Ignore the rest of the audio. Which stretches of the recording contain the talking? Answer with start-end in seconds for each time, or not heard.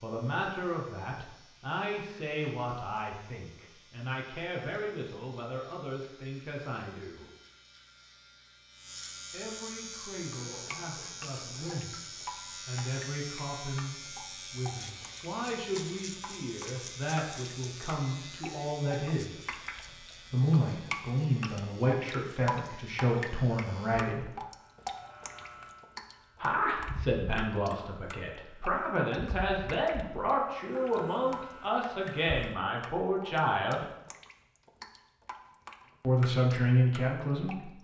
0.0-7.3, 9.3-19.4, 20.3-24.3, 26.4-33.9, 36.0-37.7.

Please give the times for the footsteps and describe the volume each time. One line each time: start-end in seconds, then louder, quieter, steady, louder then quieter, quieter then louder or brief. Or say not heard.
not heard.